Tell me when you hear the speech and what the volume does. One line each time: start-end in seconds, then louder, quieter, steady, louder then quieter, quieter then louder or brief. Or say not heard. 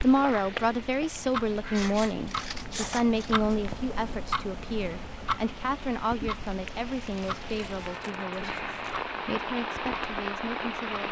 0.0-11.0 quieter.